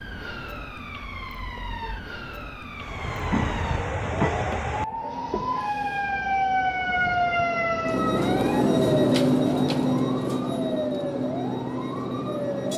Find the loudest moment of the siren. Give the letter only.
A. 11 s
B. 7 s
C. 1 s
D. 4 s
B.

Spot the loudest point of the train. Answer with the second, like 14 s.
9 s.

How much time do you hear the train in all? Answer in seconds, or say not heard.
10 s.